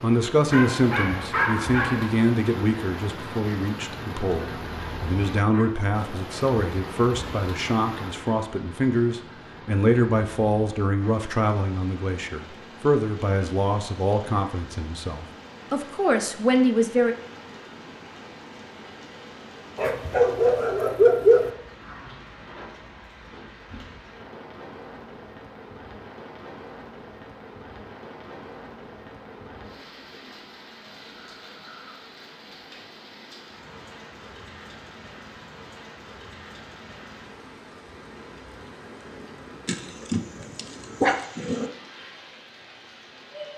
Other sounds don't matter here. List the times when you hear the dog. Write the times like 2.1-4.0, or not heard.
0.5-2.2, 19.8-21.5, 39.6-41.6.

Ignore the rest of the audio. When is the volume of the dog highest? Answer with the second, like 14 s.
21 s.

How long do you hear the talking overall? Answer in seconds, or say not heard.
17 s.